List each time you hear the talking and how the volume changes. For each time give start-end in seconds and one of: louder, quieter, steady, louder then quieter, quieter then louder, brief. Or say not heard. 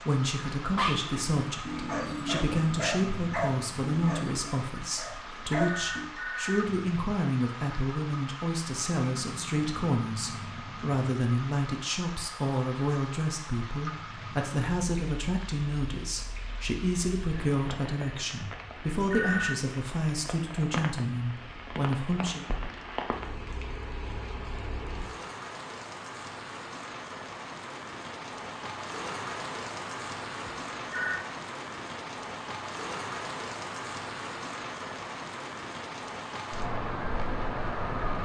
0.1-22.4 steady.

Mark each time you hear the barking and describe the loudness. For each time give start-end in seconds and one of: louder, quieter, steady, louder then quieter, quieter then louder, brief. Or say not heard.
0.6-6.0 steady.